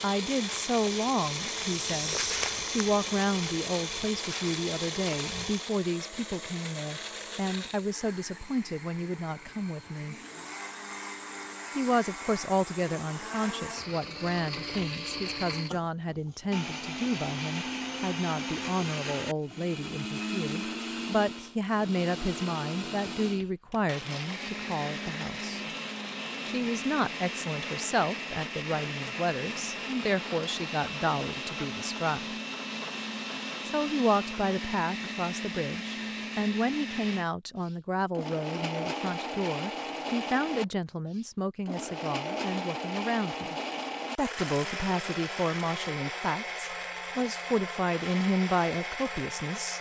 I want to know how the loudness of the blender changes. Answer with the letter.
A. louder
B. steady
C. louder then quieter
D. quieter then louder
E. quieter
B.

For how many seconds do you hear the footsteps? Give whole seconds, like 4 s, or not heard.
5 s.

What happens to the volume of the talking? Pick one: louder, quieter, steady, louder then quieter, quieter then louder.
steady.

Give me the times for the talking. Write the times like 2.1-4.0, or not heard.
0.0-10.2, 11.8-25.6, 26.4-32.4, 33.6-43.5, 44.1-49.7.